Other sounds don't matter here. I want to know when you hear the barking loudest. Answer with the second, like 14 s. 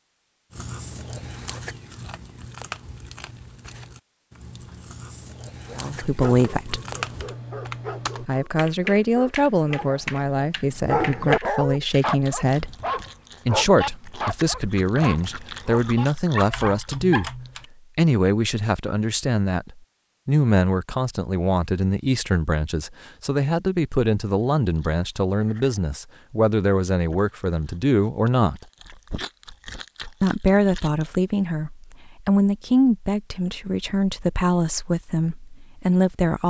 11 s.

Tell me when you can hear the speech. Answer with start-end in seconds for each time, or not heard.
5.8-6.8, 8.2-12.8, 13.4-28.6, 30.2-36.4.